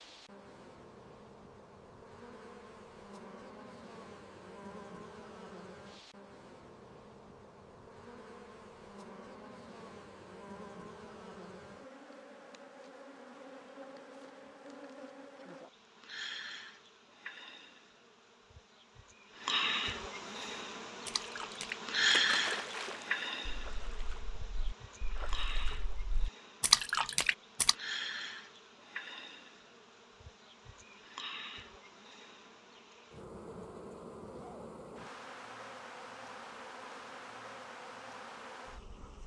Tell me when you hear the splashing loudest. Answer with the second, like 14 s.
27 s.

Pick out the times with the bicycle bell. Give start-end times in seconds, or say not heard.
not heard.